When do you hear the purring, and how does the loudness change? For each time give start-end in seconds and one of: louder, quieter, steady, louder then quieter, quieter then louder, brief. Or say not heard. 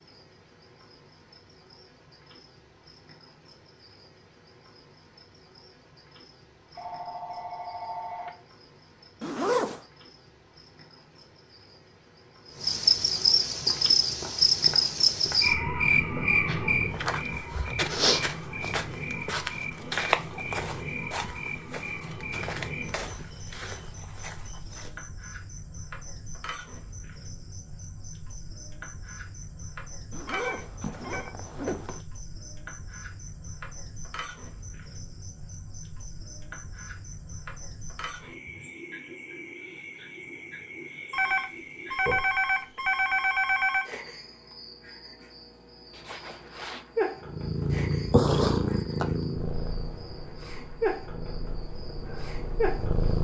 47.2-53.1 quieter.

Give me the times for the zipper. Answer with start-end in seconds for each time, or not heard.
9.2-9.8, 30.1-32.0, 45.9-46.9.